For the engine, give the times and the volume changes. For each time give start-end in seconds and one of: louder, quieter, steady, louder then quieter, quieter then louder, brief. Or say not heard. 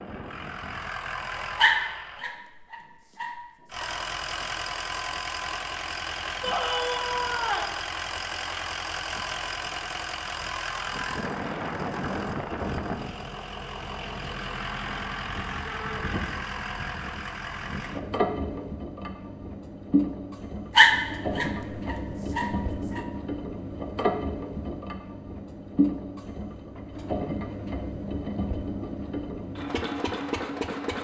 0.0-2.2 brief
3.7-30.9 steady.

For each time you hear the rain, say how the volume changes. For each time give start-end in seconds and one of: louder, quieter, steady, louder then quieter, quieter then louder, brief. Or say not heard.
not heard.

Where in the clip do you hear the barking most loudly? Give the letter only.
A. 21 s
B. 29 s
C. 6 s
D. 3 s
A.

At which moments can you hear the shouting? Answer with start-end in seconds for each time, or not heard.
6.4-7.8, 15.7-16.1.